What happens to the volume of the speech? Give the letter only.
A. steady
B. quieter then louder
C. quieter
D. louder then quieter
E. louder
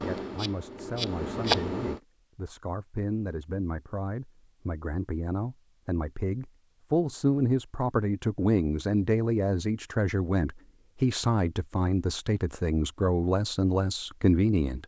E.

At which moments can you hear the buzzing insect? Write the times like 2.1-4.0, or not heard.
0.0-2.0.